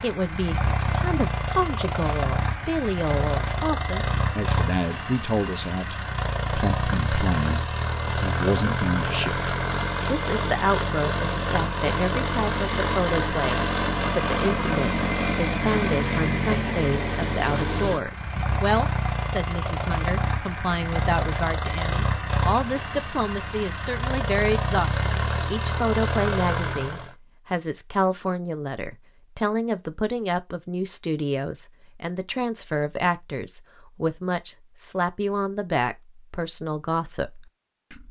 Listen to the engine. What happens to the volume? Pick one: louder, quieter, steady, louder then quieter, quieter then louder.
steady.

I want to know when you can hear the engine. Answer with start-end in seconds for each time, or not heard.
0.0-27.1.